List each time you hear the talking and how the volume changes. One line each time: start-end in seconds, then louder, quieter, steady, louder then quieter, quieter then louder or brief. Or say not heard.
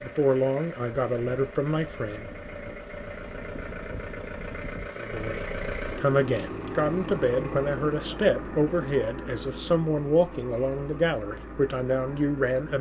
0.0-2.2 brief
5.0-12.7 steady.